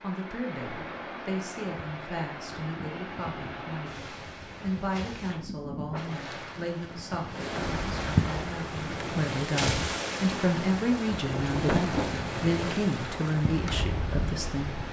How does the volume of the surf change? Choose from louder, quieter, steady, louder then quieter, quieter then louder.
louder.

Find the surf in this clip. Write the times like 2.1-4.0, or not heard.
0.0-14.8.